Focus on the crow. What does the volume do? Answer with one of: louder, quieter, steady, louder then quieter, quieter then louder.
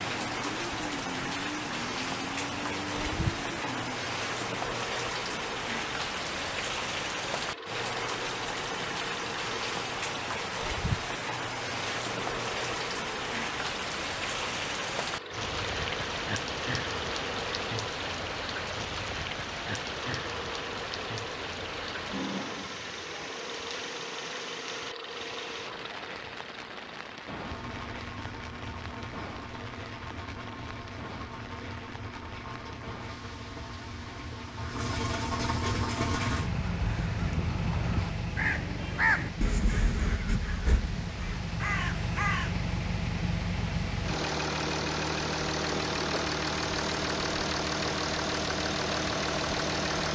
louder then quieter.